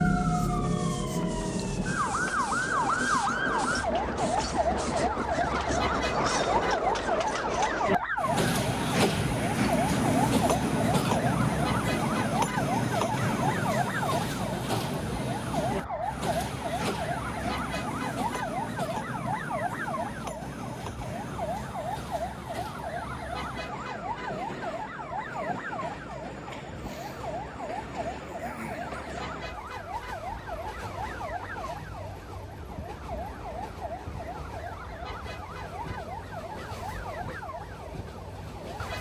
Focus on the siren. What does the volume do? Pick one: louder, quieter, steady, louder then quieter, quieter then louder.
quieter.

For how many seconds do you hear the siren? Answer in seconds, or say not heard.
39 s.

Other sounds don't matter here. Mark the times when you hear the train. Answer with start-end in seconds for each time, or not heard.
0.0-38.9.